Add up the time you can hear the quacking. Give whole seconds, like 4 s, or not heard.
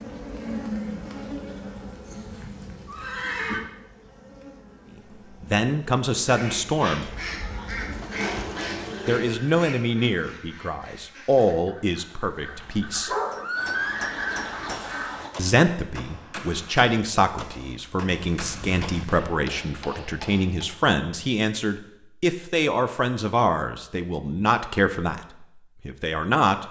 9 s.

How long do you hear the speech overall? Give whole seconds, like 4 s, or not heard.
17 s.